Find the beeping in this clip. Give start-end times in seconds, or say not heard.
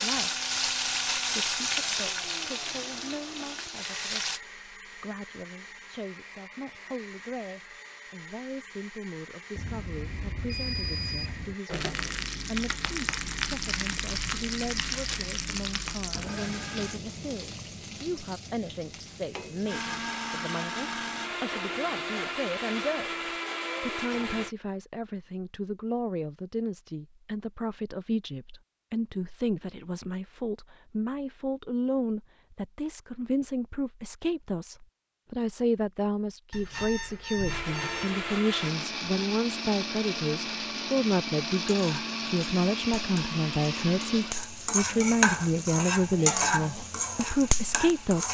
9.6-11.6, 36.5-38.2.